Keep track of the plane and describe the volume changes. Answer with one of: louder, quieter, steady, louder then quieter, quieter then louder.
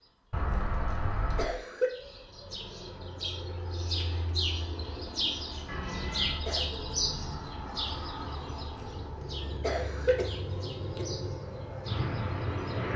louder.